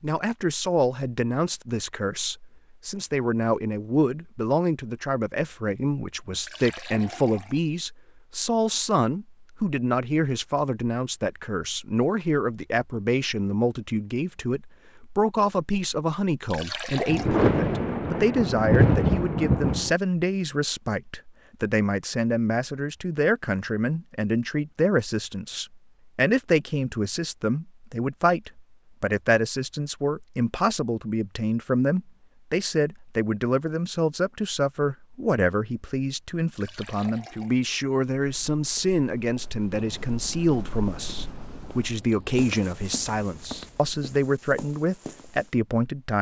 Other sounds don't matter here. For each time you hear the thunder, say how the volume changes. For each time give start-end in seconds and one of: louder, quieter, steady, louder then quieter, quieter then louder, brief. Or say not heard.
17.1-19.9 brief
39.7-44.0 quieter.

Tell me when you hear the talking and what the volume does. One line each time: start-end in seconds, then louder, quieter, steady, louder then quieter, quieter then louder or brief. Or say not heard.
0.0-46.1 steady.